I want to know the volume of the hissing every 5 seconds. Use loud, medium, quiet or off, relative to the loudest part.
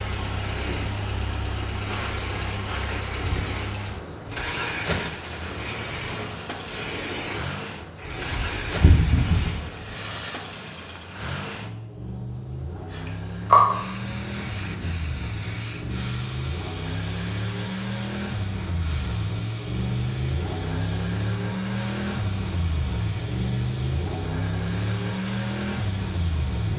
quiet, medium, loud, quiet, quiet, quiet.